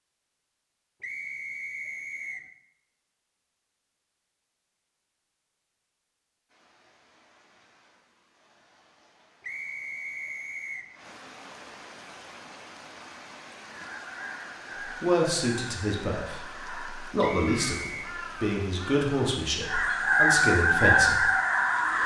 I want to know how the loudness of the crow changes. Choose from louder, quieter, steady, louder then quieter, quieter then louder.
louder.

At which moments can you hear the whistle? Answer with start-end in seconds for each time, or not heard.
1.0-2.5, 9.4-10.9, 17.2-18.1.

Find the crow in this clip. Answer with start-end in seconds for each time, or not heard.
13.6-22.0.